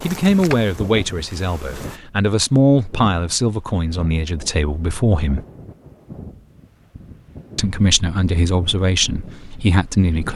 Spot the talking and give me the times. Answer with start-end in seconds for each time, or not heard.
0.0-5.4, 7.5-10.3.